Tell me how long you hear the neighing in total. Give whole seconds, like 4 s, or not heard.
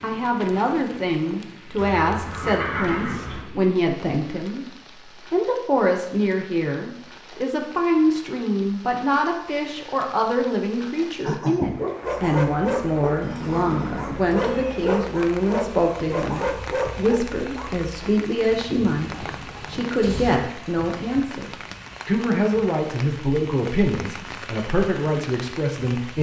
5 s.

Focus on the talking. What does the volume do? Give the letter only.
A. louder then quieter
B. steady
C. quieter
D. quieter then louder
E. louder
B.